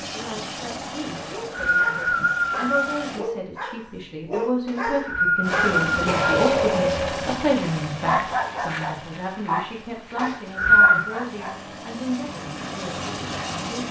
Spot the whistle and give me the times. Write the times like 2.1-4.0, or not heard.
1.1-3.0, 4.7-6.4, 10.2-11.1.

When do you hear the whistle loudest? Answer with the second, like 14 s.
11 s.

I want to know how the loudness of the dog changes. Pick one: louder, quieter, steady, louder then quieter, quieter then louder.
louder then quieter.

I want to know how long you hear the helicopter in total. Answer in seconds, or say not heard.
12 s.